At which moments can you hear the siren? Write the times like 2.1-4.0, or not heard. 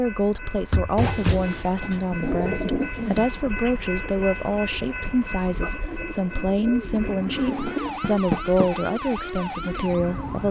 7.2-10.4.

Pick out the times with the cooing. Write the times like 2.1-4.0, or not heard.
0.9-3.3, 5.9-7.9.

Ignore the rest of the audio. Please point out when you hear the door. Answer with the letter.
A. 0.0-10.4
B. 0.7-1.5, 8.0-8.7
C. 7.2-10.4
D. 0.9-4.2
B.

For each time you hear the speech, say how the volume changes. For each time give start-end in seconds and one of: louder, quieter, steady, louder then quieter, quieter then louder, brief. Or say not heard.
0.0-10.4 steady.